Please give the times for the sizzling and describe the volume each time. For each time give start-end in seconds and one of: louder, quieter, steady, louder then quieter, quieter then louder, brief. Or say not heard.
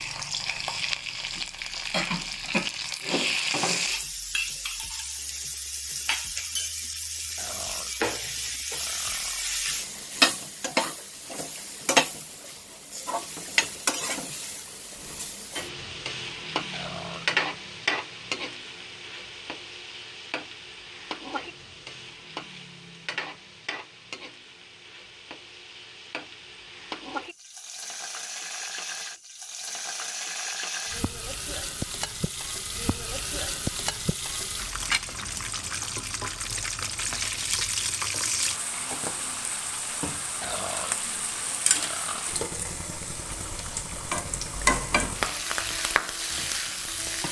0.0-47.2 quieter then louder.